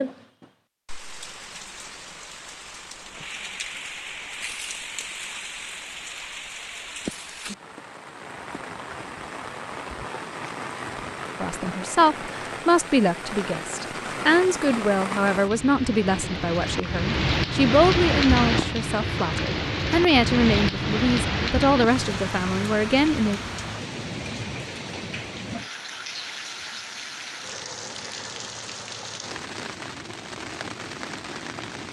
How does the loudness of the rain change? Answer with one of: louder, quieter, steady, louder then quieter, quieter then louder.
louder then quieter.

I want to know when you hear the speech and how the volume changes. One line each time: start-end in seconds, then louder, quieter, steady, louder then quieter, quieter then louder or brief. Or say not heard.
11.4-23.4 steady.